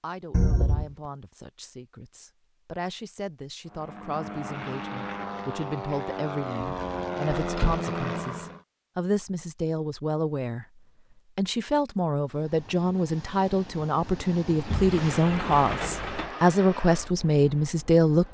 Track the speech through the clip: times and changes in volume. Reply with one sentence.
You can hear the speech from 0.0 to 18.2 s, getting louder.